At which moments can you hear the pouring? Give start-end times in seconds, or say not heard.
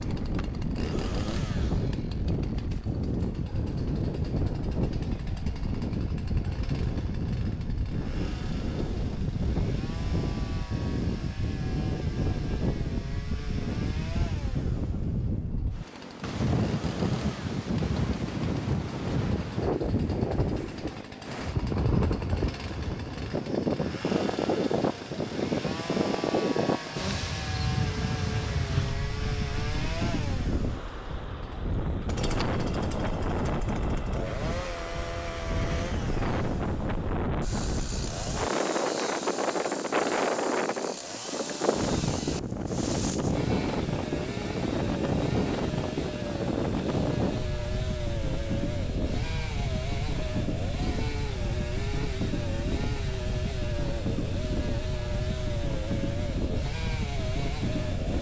not heard.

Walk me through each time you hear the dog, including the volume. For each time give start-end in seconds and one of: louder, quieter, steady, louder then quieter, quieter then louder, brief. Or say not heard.
not heard.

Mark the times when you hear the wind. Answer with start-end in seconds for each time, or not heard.
0.0-58.1.